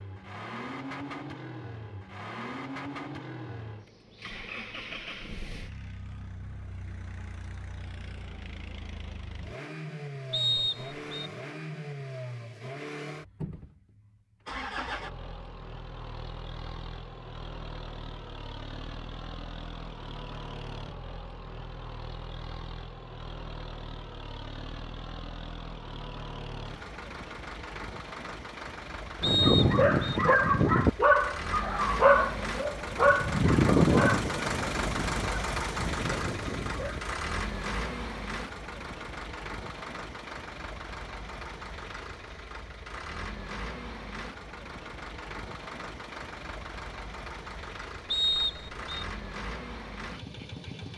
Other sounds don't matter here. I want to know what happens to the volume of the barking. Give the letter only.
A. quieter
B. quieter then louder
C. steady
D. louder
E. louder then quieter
A.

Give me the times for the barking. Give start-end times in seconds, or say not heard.
29.2-37.1.